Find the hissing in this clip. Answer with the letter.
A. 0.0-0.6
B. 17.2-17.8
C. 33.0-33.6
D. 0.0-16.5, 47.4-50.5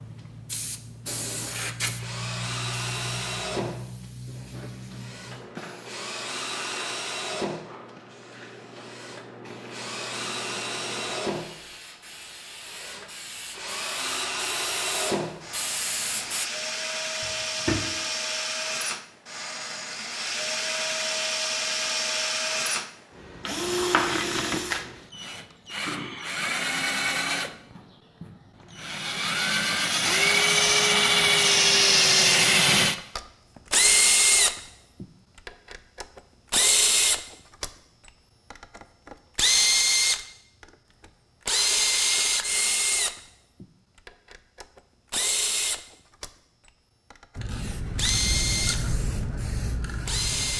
D.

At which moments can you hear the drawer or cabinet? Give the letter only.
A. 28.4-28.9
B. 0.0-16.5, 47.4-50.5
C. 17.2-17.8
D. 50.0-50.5
C.